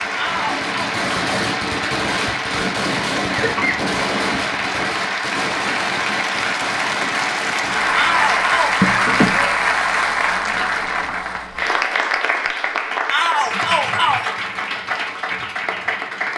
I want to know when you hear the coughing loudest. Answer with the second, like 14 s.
9 s.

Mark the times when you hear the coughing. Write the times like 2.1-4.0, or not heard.
3.4-3.9, 8.8-9.4.